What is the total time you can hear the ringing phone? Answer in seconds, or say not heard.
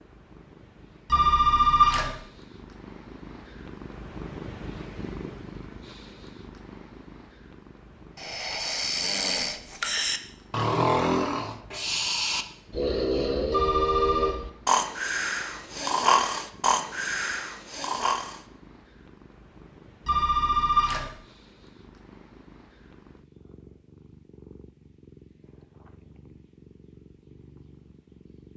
3 s.